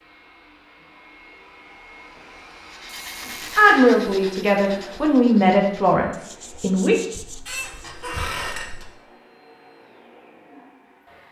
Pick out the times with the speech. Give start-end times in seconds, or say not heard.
3.5-7.0.